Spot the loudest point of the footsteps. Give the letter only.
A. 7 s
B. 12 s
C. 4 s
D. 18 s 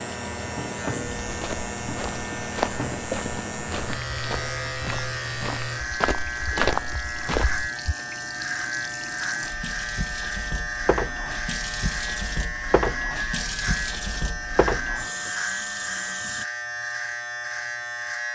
A.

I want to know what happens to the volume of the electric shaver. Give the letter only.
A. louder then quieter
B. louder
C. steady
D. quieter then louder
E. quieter
C.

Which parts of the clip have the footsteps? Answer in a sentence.
The footsteps can be heard from 1.2 to 8.0 s.